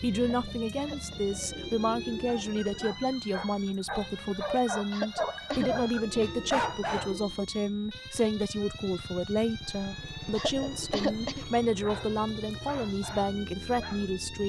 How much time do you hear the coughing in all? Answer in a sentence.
You can hear the coughing for 3 seconds altogether.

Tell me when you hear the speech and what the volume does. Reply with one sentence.
The speech can be heard from 0.0 to 14.4 s, at a steady volume.